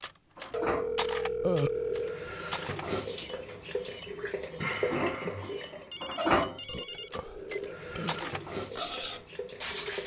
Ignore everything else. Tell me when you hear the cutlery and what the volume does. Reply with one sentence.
You can hear the cutlery from 0.0 to 10.0 s, getting quieter then louder.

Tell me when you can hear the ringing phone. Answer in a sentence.
The ringing phone can be heard from 0.5 to 2.3 s and from 5.9 to 7.6 s.